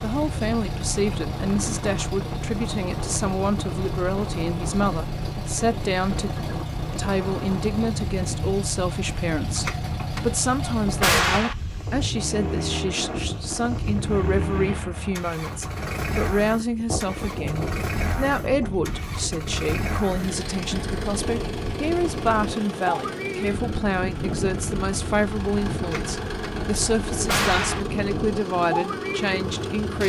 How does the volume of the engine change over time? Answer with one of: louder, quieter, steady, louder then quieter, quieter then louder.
steady.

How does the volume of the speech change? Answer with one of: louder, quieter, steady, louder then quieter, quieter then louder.
steady.